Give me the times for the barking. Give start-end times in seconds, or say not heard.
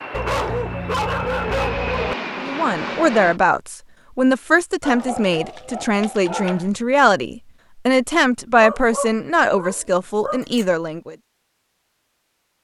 0.1-2.1, 4.8-6.7, 8.6-10.7.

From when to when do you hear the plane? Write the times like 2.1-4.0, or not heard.
0.0-3.4.